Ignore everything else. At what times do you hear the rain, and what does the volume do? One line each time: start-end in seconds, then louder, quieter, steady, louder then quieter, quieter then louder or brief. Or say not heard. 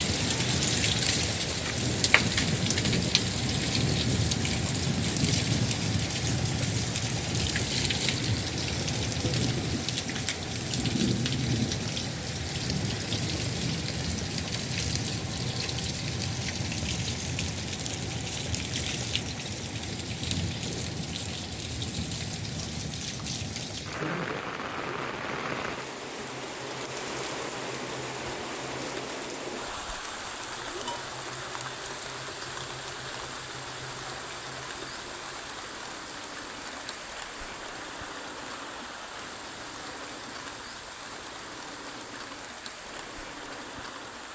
0.0-44.2 quieter.